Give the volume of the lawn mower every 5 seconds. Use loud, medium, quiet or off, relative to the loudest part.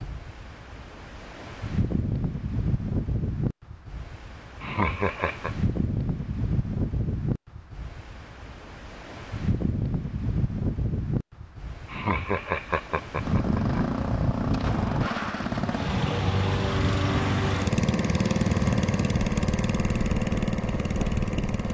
off, off, loud, loud, loud.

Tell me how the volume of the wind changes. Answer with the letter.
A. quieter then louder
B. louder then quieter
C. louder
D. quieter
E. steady
E.